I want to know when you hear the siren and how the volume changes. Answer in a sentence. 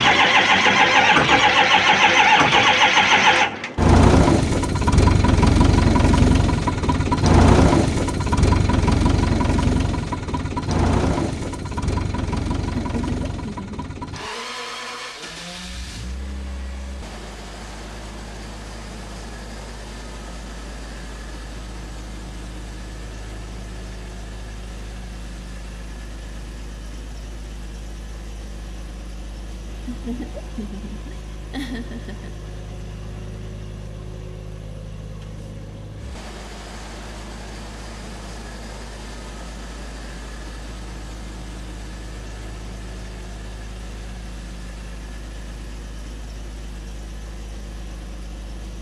The siren can't be heard in this clip.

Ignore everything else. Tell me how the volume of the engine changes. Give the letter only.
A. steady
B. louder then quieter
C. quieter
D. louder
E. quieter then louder
C.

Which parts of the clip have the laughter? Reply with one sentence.
You can hear the laughter from 12.9 to 13.8 s and from 29.9 to 32.4 s.